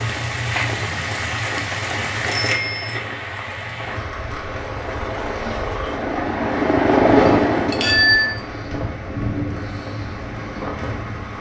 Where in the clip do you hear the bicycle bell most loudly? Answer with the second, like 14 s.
8 s.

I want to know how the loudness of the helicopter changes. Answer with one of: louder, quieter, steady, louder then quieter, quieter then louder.
louder then quieter.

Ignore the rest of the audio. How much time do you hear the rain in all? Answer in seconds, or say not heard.
11 s.